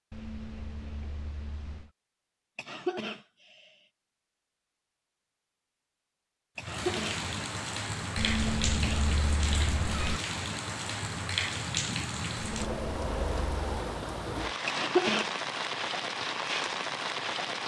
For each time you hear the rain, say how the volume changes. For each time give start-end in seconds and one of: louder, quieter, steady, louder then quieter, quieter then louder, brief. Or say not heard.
6.5-17.6 steady.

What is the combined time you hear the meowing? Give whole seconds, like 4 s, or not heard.
5 s.